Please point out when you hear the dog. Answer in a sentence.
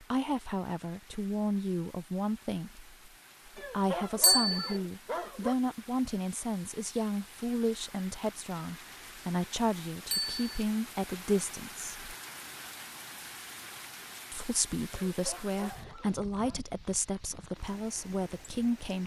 The dog can be heard from 3.5 to 5.5 s and from 15.1 to 16.6 s.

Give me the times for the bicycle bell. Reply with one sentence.
The bicycle bell can be heard from 4.2 to 4.8 s and from 10.1 to 10.5 s.